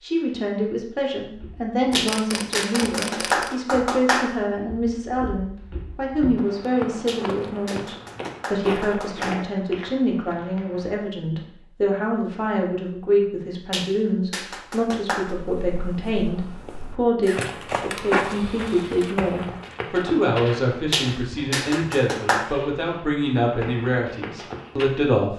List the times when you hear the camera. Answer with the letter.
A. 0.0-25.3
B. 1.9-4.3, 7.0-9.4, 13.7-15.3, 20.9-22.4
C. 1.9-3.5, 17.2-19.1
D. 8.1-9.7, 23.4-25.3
C.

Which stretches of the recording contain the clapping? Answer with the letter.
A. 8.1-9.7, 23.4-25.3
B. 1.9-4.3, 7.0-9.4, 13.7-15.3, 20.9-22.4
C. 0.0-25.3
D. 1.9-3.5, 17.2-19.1
B.